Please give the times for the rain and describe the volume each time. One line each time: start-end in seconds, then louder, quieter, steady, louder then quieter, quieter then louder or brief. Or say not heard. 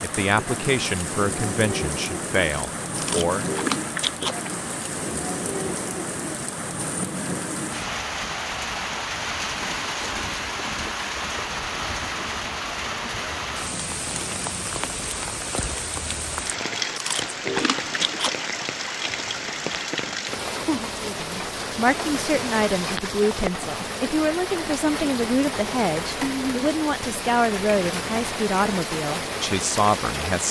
0.0-30.4 steady.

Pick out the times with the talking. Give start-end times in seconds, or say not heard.
0.0-3.5, 21.0-30.4.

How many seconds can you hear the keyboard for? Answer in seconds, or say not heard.
not heard.